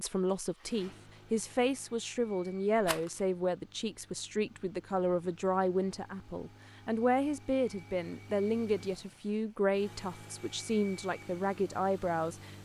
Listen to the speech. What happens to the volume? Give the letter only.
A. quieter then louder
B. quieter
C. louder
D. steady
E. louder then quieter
D.